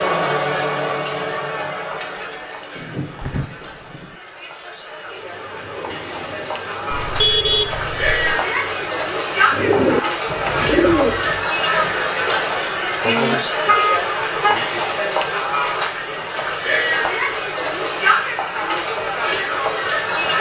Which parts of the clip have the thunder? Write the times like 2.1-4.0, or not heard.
2.8-4.2.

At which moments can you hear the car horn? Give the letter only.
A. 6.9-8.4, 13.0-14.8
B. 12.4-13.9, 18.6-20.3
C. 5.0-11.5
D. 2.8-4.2
A.